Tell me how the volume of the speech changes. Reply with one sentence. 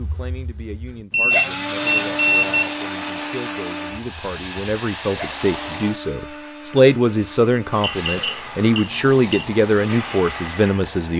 The volume of the speech goes up.